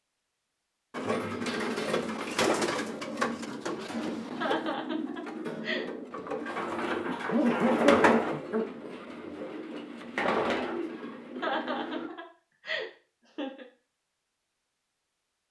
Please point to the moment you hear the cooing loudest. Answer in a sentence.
The volume of the cooing peaks at 8 seconds.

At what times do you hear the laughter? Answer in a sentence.
The laughter can be heard from 4.3 to 5.8 s and from 11.3 to 13.7 s.